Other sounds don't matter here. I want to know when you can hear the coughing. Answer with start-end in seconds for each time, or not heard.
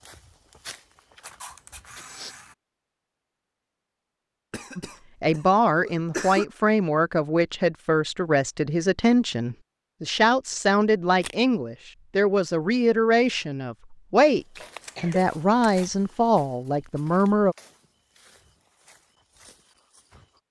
4.5-6.5, 14.6-15.3.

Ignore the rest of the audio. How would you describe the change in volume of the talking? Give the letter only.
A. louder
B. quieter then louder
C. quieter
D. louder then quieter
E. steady
E.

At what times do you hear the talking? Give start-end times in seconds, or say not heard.
4.8-17.6.